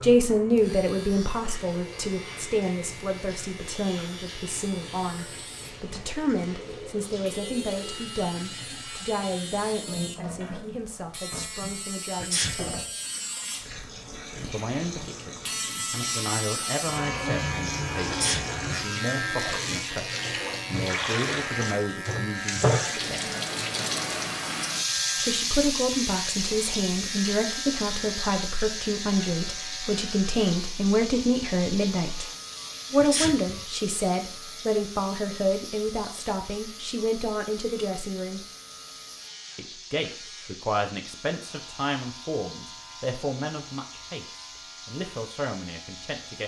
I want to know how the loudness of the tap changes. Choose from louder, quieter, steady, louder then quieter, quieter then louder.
louder then quieter.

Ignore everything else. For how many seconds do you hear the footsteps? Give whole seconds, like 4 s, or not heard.
not heard.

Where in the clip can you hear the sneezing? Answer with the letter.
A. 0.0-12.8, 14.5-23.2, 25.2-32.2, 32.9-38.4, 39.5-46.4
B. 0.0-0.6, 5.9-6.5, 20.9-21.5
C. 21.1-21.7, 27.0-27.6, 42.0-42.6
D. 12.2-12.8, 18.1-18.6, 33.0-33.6
D.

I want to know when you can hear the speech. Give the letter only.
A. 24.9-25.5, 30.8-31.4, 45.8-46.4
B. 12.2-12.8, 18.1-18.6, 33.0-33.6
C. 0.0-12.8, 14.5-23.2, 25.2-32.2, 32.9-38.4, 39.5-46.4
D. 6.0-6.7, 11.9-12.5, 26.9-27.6
C.